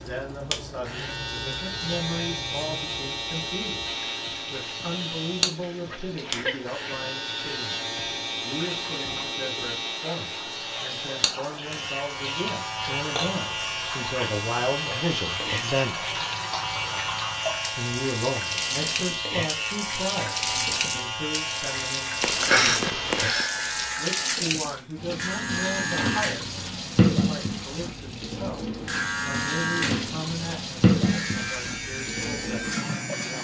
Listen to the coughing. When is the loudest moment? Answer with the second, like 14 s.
23 s.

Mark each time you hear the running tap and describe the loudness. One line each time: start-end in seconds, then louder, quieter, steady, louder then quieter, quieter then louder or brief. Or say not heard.
0.0-33.4 louder.